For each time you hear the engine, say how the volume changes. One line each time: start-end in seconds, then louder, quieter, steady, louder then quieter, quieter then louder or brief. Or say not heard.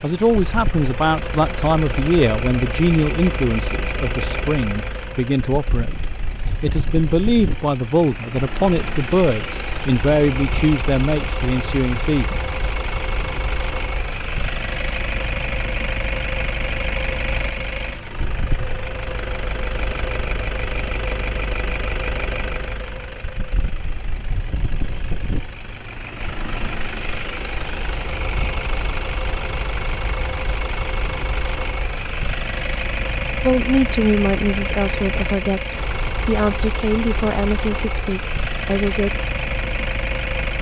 0.0-40.5 steady.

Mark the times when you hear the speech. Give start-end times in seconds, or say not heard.
0.0-12.4, 33.4-39.1.